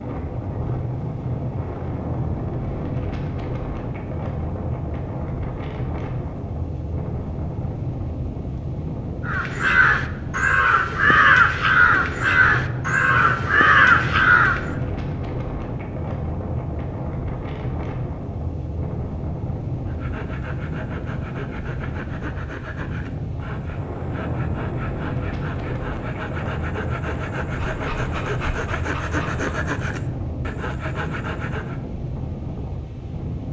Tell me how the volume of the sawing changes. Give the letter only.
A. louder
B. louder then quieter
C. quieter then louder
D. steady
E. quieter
A.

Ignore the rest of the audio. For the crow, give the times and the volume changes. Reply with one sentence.
You can hear the crow from 9.2 to 14.7 s, at a steady volume.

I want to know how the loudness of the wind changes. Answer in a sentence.
The volume of the wind stays about the same.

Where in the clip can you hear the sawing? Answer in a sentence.
The sawing can be heard from 19.9 to 31.8 s.